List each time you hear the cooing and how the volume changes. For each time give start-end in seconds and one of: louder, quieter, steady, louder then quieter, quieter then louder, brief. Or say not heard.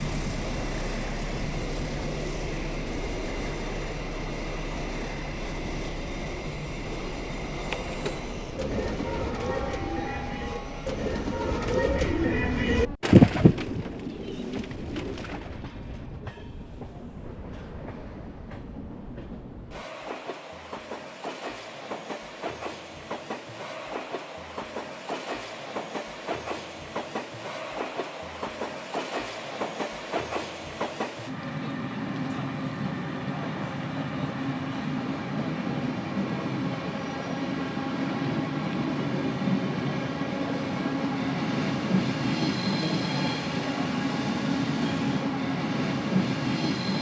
7.5-15.6 louder then quieter.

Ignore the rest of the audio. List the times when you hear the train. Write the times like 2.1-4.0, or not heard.
0.0-46.9.